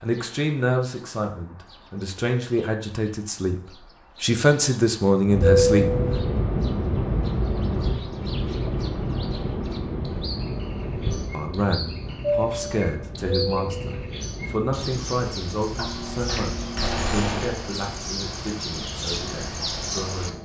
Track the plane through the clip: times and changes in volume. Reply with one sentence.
You can hear the plane from 5.2 to 20.4 s, getting quieter.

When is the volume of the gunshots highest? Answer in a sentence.
The loudest moment of the gunshots is at 17 seconds.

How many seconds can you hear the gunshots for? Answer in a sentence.
The gunshots can be heard for 2 seconds in total.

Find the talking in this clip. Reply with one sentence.
You can hear the talking from 0.0 to 6.0 s and from 11.3 to 20.4 s.